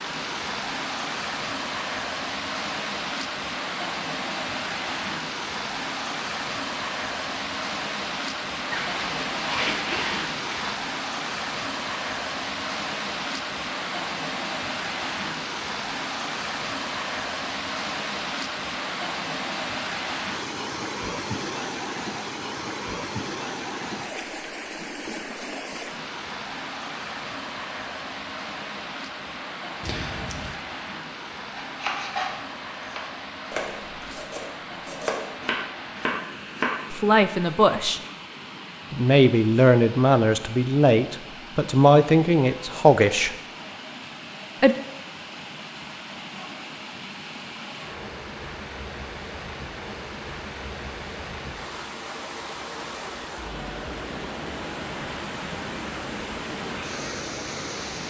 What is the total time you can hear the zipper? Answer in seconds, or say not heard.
3 s.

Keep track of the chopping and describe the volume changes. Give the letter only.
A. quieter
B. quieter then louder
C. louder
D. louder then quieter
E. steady
B.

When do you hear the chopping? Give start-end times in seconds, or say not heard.
31.6-36.8.